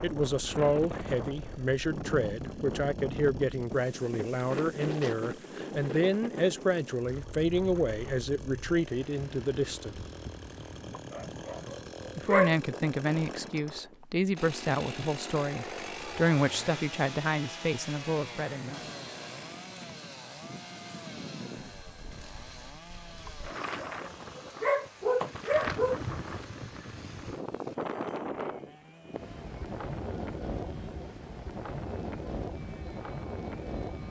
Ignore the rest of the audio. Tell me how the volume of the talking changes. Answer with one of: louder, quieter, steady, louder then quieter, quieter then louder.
steady.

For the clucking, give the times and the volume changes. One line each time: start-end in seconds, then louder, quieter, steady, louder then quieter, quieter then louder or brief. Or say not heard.
not heard.